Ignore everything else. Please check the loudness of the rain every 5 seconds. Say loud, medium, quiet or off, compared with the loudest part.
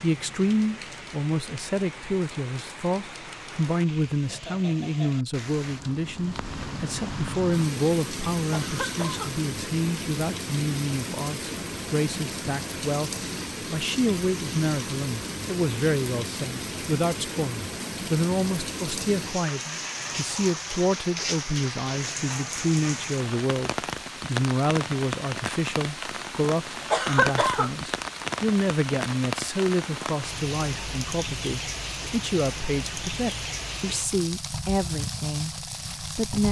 medium, loud, loud, loud, loud, loud, loud, loud.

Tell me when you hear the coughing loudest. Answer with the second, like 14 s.
27 s.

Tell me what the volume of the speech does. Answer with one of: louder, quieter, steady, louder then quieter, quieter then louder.
steady.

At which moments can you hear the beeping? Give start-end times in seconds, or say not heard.
not heard.